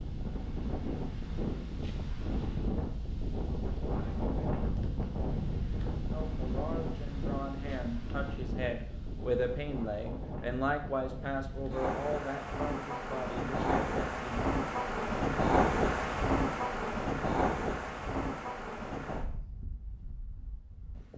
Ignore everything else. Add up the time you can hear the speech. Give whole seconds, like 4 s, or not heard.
8 s.